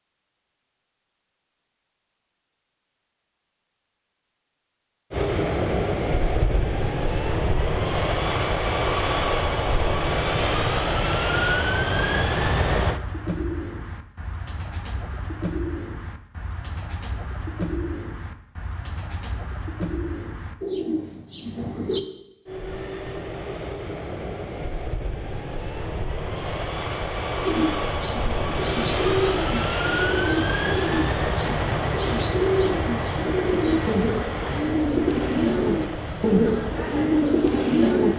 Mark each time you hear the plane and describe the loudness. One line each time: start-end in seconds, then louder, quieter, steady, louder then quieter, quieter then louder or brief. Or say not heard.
5.1-13.0 steady
22.4-38.1 louder then quieter.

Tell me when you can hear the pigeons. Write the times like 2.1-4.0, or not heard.
11.3-22.0, 27.4-38.1.